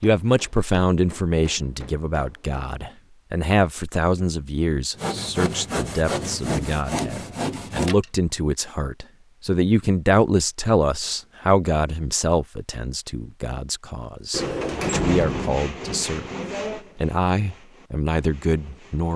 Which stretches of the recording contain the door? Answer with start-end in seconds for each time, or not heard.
14.3-15.6.